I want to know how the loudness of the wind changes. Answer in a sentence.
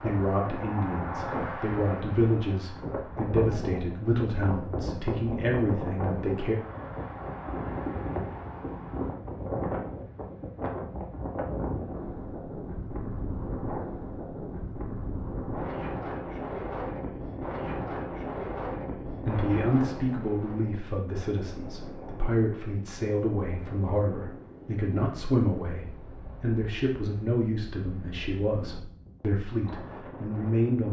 The volume of the wind goes down.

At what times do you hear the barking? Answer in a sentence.
You can't hear the barking here.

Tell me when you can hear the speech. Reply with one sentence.
The speech can be heard from 0.0 to 6.5 s and from 19.2 to 30.8 s.